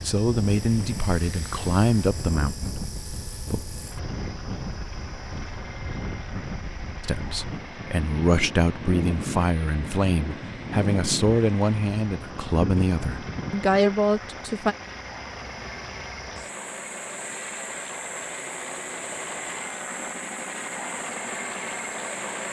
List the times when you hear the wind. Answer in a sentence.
You can hear the wind from 0.0 to 13.8 s.